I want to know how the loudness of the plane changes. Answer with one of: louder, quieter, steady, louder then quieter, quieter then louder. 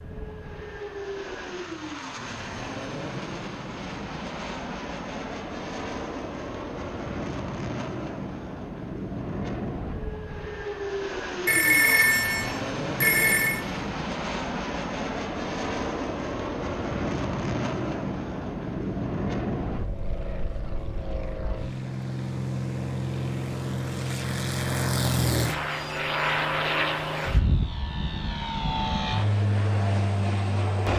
louder.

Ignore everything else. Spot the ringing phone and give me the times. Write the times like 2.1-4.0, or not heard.
11.4-13.6.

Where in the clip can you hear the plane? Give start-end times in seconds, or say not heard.
0.0-30.9.